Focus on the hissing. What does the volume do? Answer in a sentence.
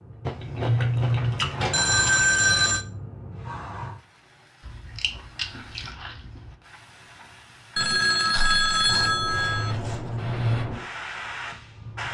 The volume of the hissing goes down, then up.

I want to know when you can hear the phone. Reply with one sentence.
The phone can be heard from 1.7 to 2.9 s and from 7.8 to 9.8 s.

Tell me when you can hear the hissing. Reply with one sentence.
The hissing can be heard from 0.0 to 12.1 s.